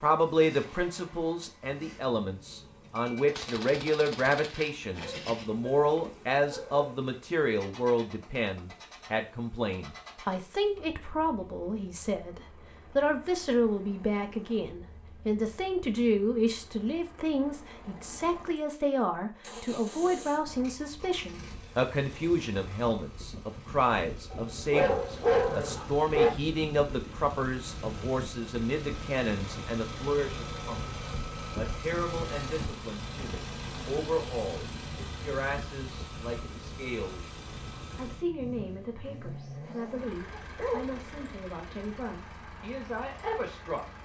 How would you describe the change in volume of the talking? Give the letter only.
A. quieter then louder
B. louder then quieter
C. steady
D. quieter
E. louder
D.